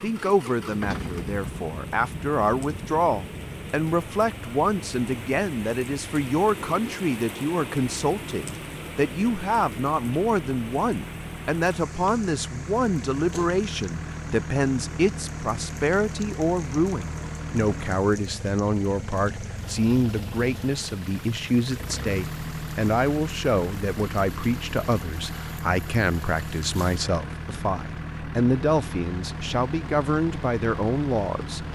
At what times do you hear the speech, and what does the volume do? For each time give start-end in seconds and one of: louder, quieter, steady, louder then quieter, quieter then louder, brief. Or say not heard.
0.0-31.6 steady.